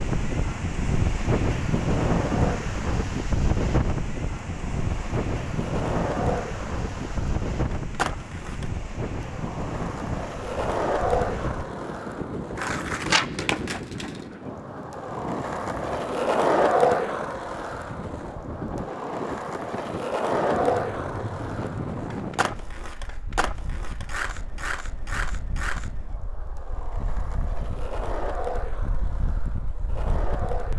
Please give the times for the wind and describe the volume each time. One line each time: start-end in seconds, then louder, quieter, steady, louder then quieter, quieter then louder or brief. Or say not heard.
0.0-30.7 quieter.